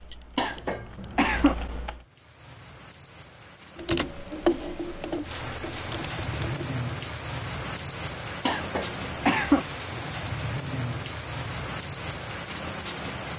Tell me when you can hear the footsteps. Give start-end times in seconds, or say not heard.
not heard.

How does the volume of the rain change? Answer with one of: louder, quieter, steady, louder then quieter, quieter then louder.
louder.